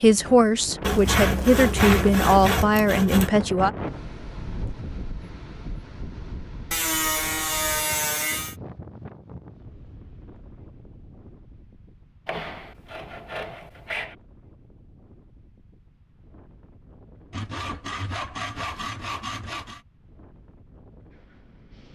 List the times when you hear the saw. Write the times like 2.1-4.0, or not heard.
0.8-3.3, 6.7-8.6, 12.2-14.2, 17.3-19.8.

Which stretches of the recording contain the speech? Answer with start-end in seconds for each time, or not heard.
0.0-3.7.